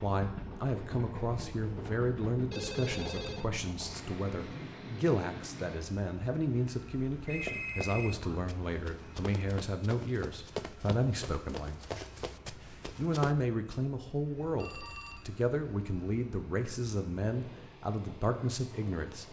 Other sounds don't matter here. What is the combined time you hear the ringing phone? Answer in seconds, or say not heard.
3 s.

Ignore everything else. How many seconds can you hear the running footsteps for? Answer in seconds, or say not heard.
6 s.